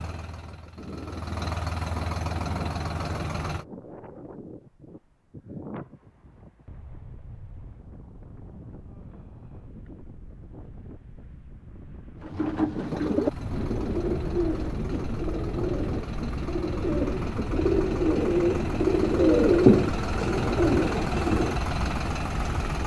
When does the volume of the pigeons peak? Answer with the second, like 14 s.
20 s.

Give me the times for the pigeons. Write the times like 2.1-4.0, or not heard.
12.2-21.6.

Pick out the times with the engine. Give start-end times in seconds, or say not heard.
0.0-3.6, 12.8-22.8.